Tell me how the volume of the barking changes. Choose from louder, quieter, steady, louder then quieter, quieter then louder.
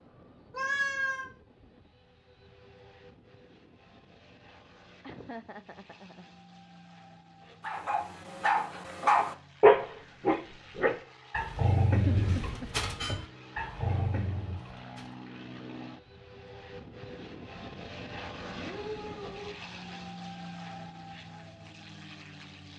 louder then quieter.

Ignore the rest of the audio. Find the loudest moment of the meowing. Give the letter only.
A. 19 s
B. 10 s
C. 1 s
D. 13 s
C.